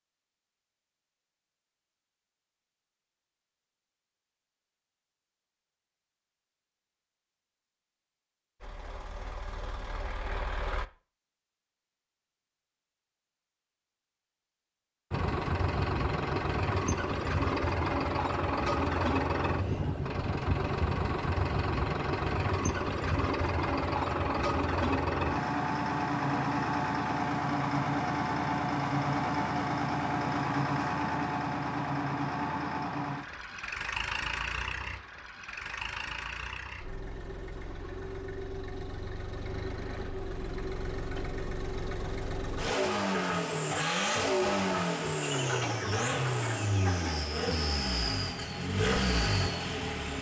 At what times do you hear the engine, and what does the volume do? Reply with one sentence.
You can hear the engine briefly from 8.6 to 10.8 s; and from 15.1 to 50.1 s, getting quieter then louder.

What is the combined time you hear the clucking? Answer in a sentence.
The clucking can be heard for 2 seconds in total.